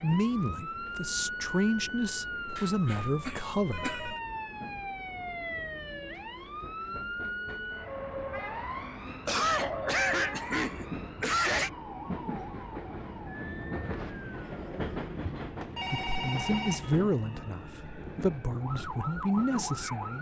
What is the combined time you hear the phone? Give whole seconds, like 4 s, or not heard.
3 s.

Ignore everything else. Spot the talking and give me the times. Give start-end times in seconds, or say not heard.
0.0-3.9, 15.9-20.1.